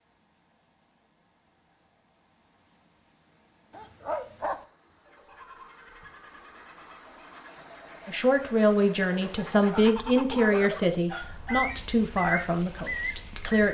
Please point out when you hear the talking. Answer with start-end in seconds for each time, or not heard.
8.1-13.6.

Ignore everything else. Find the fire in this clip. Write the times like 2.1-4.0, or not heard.
not heard.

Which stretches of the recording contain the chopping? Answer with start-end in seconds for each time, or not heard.
not heard.